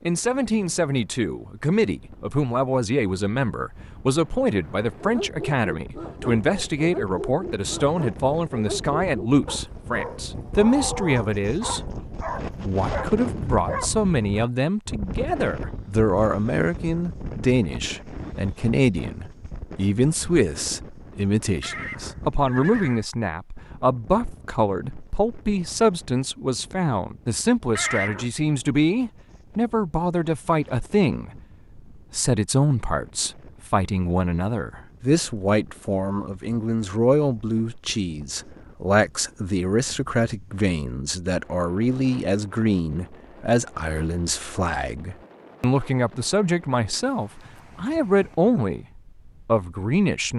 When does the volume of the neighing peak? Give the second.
28 s.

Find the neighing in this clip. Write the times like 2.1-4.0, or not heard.
21.6-23.1, 27.8-28.2.